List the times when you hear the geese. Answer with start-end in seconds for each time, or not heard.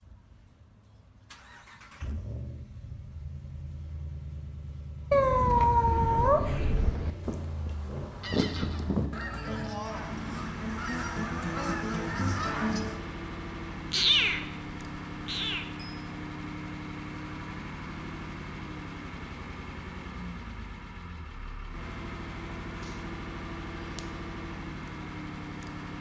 5.8-13.0.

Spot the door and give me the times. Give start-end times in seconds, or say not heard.
not heard.